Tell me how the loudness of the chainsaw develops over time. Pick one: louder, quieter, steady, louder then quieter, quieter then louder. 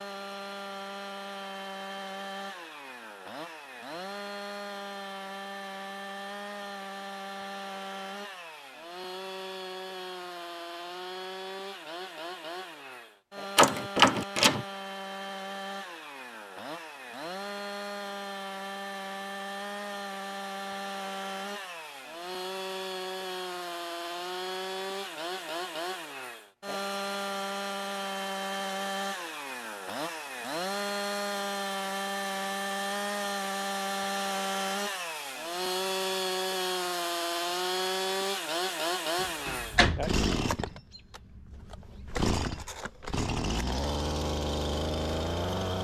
louder.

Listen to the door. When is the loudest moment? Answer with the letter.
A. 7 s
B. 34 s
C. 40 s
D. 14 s
D.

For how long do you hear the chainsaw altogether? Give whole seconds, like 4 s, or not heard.
46 s.